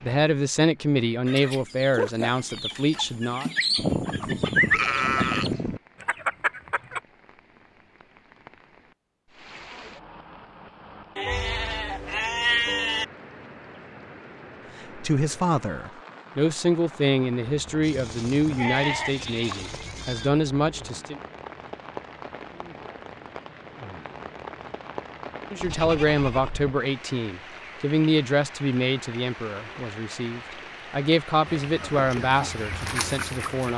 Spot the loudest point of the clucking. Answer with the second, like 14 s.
5 s.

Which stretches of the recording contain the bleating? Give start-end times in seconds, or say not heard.
3.8-5.8, 11.2-13.1, 17.8-20.3, 25.6-26.8.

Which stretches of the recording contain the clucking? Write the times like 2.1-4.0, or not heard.
1.2-7.0, 31.4-33.7.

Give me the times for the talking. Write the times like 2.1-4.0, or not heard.
0.0-3.5, 14.9-21.2, 25.5-33.7.